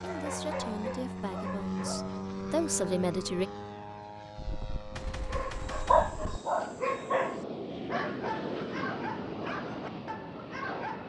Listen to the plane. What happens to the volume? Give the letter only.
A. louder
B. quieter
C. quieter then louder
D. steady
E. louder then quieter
C.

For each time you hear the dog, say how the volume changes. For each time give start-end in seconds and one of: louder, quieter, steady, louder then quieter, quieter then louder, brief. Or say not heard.
0.0-2.2 brief
5.3-11.0 quieter.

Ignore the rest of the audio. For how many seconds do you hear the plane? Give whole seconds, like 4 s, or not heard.
11 s.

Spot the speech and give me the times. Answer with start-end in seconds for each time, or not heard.
0.0-3.5.